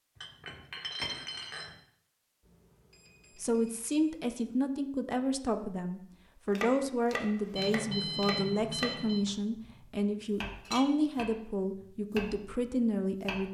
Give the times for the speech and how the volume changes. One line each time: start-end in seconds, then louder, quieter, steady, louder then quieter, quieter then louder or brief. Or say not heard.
3.4-13.4 steady.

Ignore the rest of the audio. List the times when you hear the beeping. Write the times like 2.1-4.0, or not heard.
2.4-4.3, 7.5-9.2.